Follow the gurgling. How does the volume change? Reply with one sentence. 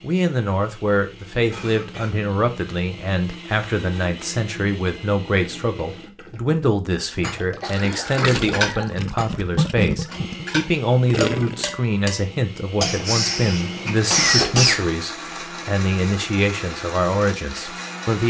The loudness of the gurgling goes up.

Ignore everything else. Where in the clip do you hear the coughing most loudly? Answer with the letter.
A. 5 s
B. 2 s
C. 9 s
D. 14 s
D.